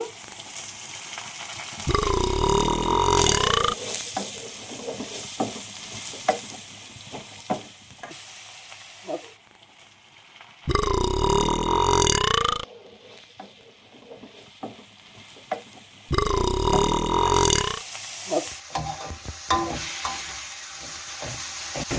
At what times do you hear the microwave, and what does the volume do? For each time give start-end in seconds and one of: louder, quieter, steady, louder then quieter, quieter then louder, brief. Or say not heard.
not heard.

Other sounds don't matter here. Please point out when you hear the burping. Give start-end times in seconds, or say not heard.
1.9-3.8, 10.7-12.7, 16.1-17.8.